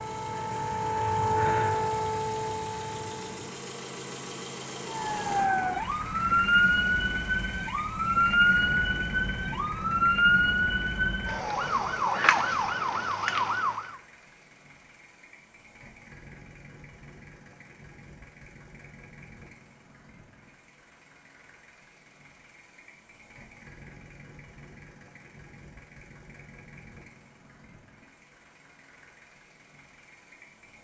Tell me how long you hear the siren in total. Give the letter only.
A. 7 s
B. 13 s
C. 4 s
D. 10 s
B.